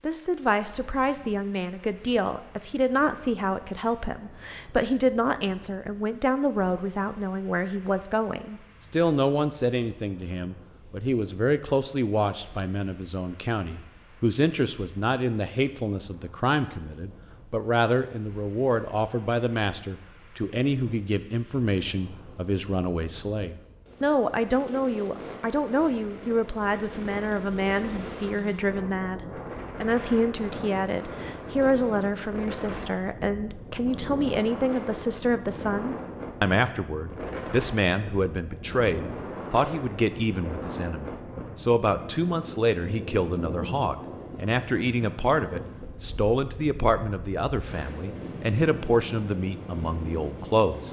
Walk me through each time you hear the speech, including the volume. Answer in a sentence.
The speech can be heard from 0.0 to 50.8 s, at a steady volume.